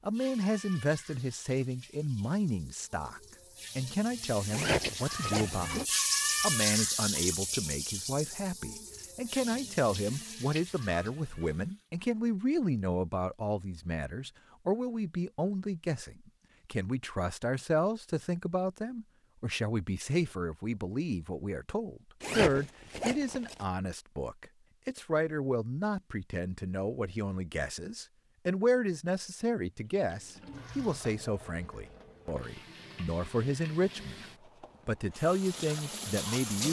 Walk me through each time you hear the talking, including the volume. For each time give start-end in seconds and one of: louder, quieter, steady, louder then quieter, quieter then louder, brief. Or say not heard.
0.1-34.2 steady
34.9-36.6 brief.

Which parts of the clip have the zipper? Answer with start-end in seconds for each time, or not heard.
4.5-5.7, 22.2-23.6.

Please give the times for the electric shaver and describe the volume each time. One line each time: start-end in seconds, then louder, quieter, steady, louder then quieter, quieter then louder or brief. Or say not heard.
not heard.